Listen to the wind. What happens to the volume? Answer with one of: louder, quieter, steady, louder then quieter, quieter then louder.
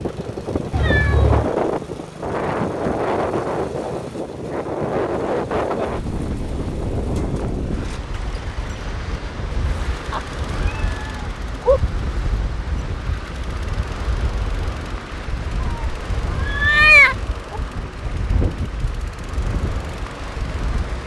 quieter.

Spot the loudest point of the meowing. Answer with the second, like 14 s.
17 s.